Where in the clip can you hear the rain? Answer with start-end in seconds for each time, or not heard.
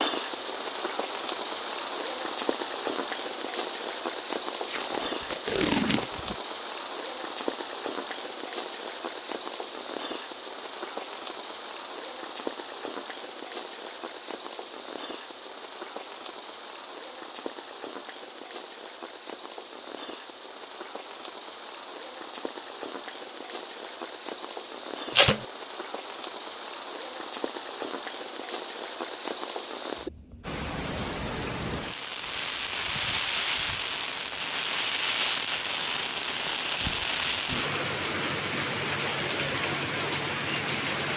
0.0-41.1.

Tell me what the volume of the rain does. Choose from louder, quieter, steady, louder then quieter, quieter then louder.
quieter then louder.